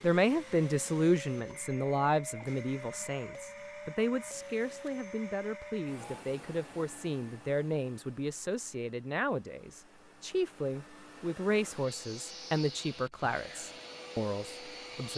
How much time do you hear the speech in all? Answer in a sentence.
You can hear the speech for 15 seconds altogether.